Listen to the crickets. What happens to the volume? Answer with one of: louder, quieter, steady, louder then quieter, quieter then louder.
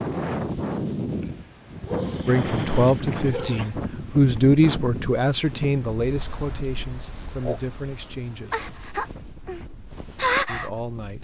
quieter then louder.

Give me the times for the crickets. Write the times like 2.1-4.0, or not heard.
2.2-11.1.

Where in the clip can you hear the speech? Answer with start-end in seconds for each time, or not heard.
2.2-8.6, 10.4-11.1.